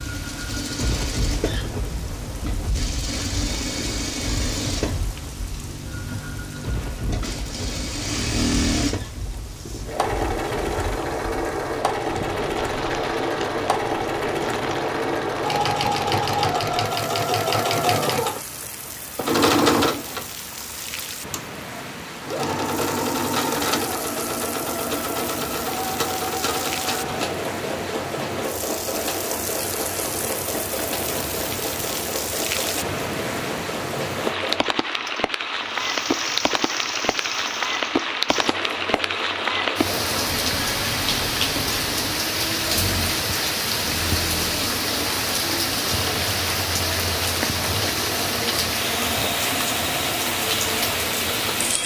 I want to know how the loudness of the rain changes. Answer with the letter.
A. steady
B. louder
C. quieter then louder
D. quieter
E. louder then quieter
B.